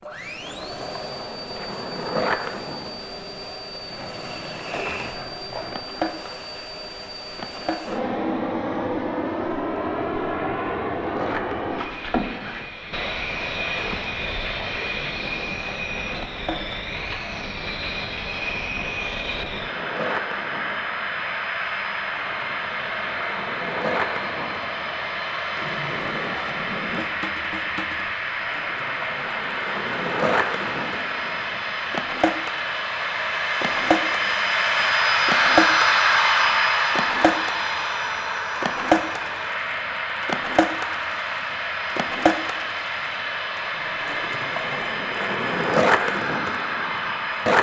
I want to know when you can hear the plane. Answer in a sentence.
You can hear the plane from 0.0 to 47.5 s.